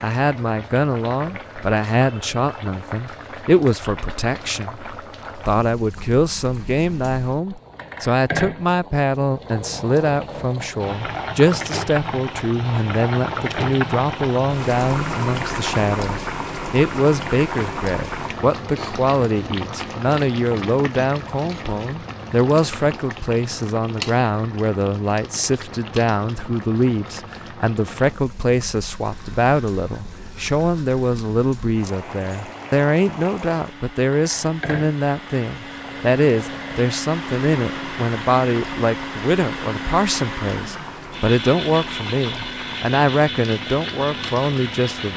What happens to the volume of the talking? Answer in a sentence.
The loudness of the talking stays about the same.